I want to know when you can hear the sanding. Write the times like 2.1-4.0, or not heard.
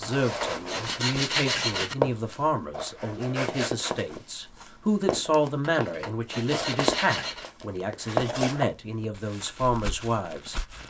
0.0-1.9, 5.7-7.5.